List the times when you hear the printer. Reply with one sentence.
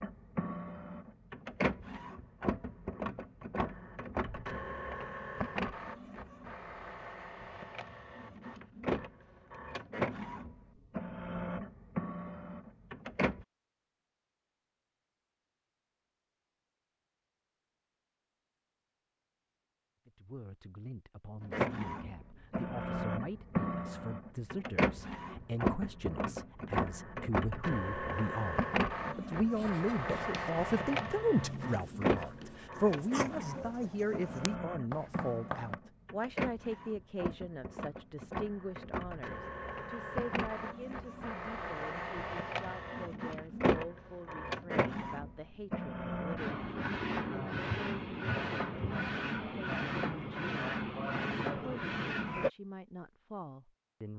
You can hear the printer from 0.0 to 13.4 s and from 21.4 to 52.5 s.